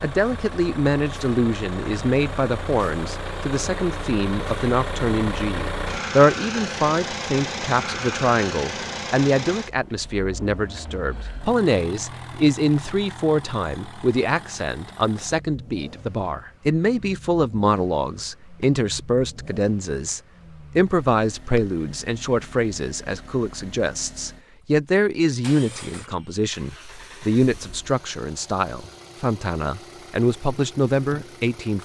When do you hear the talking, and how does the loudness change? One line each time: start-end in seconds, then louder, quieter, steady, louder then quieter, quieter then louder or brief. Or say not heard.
0.0-31.8 steady.